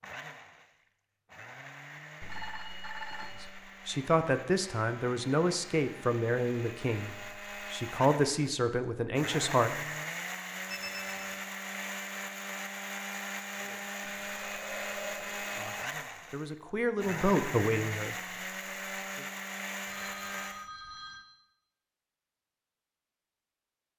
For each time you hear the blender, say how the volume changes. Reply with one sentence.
The blender can be heard from 0.0 to 20.7 s, getting louder.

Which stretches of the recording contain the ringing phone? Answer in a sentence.
You can hear the ringing phone from 2.2 to 3.5 s, from 10.7 to 11.4 s and from 19.9 to 21.2 s.